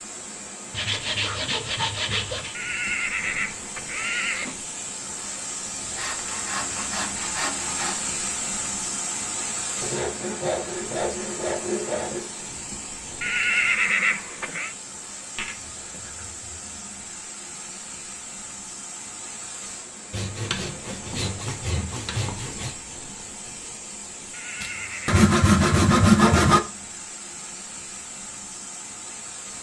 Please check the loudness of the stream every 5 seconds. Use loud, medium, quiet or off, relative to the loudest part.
medium, loud, medium, medium, medium, medium.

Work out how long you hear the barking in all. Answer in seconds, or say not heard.
not heard.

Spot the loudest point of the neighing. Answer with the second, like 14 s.
14 s.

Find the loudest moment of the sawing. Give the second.
26 s.